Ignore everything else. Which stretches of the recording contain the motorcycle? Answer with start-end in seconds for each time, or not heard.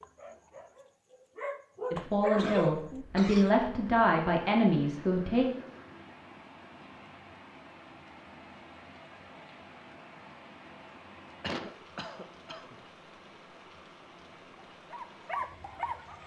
not heard.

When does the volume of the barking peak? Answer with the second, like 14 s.
2 s.